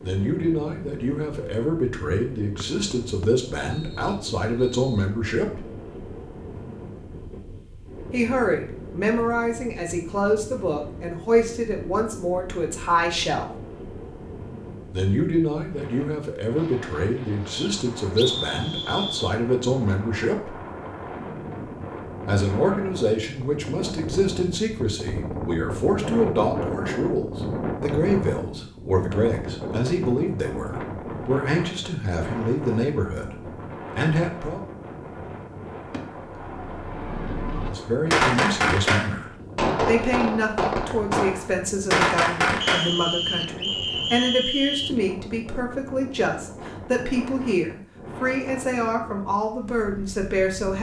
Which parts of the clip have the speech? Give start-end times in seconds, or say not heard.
0.0-5.7, 8.1-13.5, 14.9-20.6, 22.2-33.4, 34.0-34.6, 37.6-50.7.